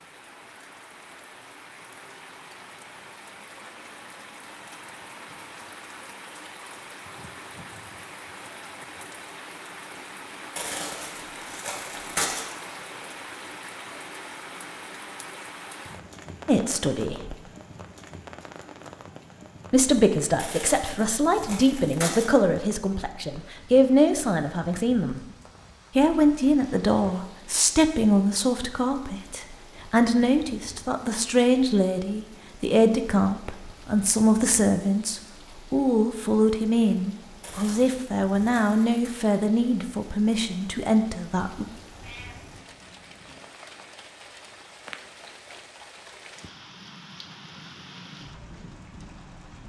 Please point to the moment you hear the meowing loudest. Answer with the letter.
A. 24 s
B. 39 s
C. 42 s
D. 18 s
C.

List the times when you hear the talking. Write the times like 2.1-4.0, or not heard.
16.4-17.4, 19.7-25.2, 25.9-41.6.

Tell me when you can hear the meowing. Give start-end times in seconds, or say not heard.
42.0-43.5.